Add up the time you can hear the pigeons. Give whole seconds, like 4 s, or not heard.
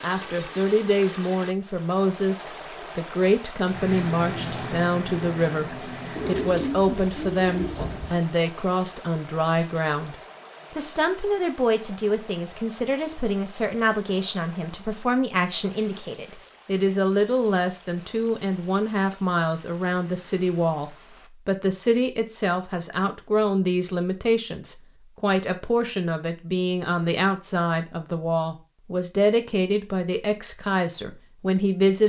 2 s.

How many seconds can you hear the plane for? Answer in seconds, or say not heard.
3 s.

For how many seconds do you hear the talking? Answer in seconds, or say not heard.
32 s.